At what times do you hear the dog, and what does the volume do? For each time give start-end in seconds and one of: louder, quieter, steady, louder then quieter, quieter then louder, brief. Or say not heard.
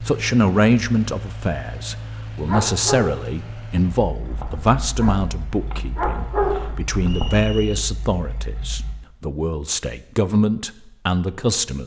2.3-7.5 quieter then louder.